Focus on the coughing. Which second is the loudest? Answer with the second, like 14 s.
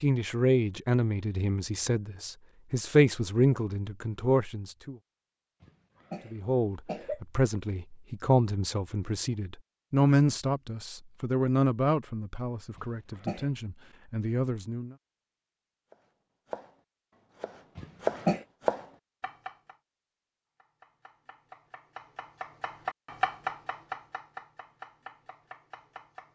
18 s.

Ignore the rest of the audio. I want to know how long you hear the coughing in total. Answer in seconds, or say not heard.
3 s.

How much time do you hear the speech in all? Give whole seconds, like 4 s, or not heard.
14 s.